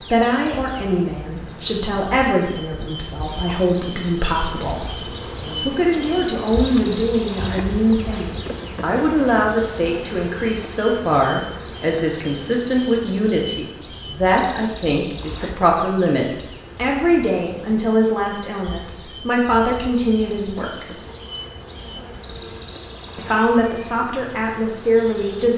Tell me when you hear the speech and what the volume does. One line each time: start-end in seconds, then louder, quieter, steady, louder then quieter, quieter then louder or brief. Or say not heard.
0.0-20.9 steady
23.1-25.5 brief.